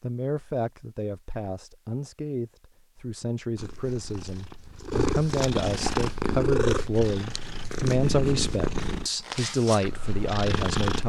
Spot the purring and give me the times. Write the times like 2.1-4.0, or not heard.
3.5-11.0.